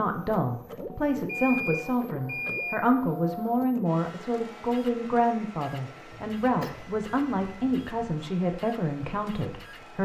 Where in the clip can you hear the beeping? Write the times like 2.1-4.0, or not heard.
1.1-2.8, 6.3-8.1.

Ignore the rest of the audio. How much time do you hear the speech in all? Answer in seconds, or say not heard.
10 s.